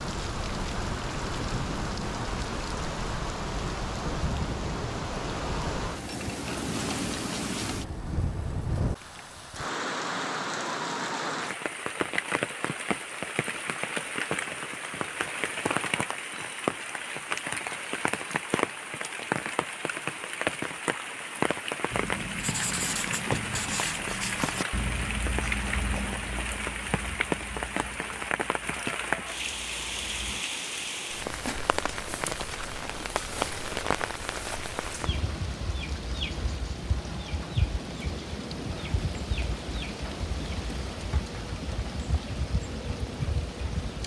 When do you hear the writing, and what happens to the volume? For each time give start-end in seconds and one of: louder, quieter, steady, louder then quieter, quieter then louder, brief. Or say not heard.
21.9-30.4 quieter.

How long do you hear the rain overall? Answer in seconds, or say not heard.
44 s.